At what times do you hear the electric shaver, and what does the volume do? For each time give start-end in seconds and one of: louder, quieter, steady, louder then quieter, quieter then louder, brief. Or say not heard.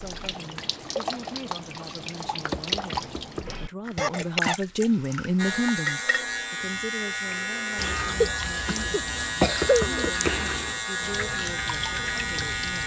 5.3-12.8 steady.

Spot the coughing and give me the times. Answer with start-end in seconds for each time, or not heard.
4.0-4.5, 8.1-10.1.